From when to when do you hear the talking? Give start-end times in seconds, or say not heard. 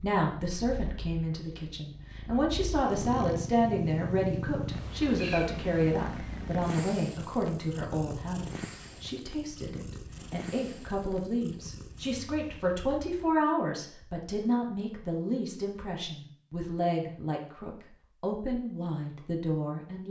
0.0-20.0.